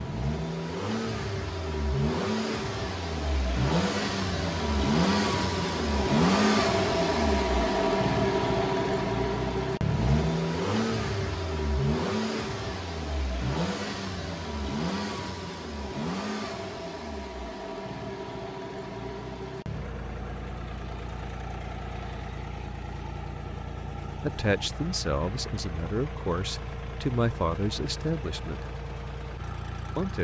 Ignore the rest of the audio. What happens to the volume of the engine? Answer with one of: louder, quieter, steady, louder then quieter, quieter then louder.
quieter.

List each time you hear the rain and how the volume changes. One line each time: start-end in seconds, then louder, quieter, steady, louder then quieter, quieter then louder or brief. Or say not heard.
not heard.